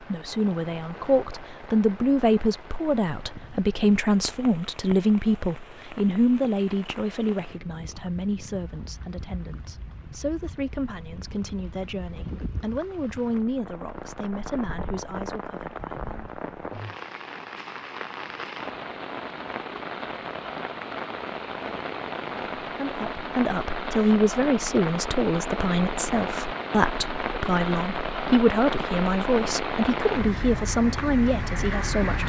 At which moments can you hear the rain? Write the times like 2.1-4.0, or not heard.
0.0-32.2.